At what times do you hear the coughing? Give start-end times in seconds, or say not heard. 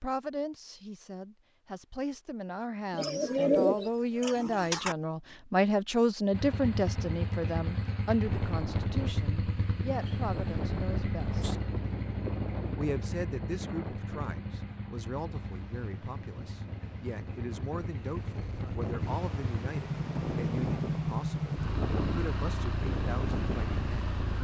not heard.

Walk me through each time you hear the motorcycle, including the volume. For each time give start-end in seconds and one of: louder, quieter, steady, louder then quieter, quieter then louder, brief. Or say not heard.
6.3-24.3 quieter then louder.